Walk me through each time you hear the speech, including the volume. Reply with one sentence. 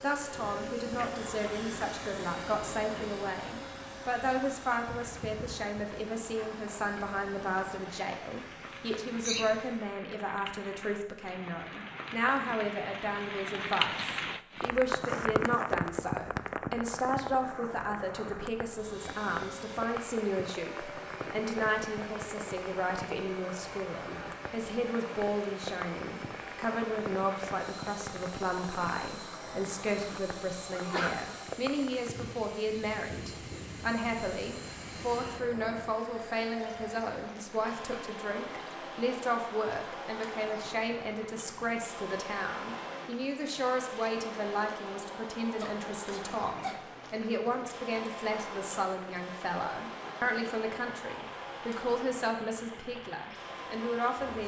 The speech can be heard from 0.0 to 54.4 s, at a steady volume.